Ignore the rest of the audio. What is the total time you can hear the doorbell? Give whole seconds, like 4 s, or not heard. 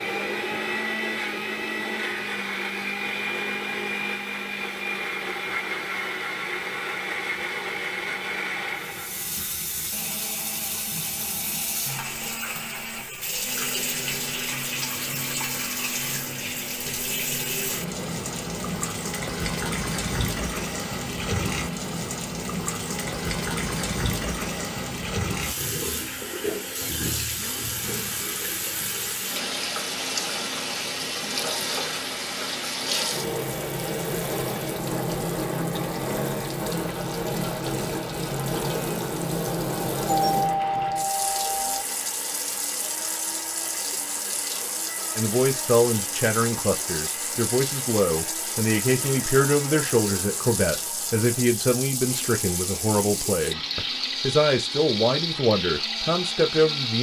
2 s.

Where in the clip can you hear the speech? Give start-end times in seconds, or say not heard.
45.1-56.9.